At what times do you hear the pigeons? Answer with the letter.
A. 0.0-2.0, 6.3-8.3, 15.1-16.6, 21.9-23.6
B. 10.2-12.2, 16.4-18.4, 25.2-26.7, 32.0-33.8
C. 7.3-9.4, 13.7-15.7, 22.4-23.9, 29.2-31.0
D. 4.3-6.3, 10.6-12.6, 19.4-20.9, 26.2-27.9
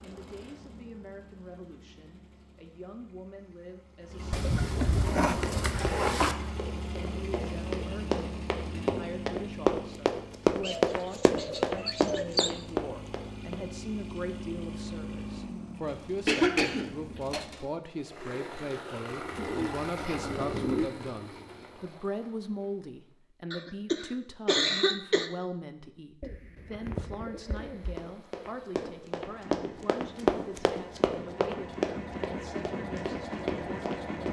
D.